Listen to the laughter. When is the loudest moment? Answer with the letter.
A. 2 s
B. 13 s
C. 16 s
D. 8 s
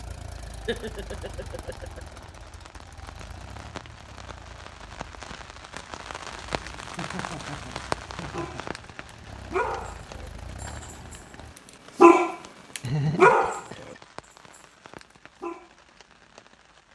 B.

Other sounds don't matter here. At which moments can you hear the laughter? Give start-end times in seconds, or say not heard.
0.7-2.0, 7.0-8.8, 12.8-14.0.